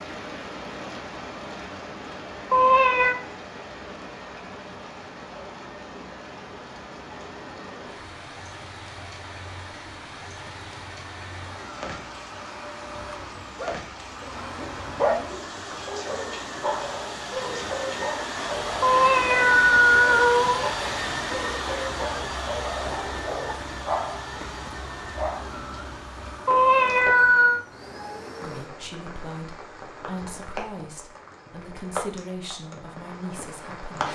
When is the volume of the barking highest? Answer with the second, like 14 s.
15 s.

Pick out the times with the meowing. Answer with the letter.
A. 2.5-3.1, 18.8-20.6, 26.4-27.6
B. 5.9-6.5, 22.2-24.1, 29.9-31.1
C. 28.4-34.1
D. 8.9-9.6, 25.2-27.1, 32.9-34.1
A.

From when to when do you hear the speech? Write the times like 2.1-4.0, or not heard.
28.4-34.1.